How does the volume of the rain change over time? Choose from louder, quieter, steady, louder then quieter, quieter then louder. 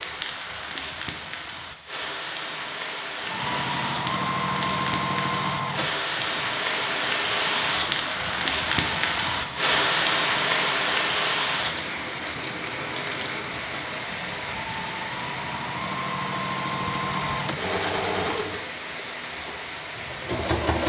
louder then quieter.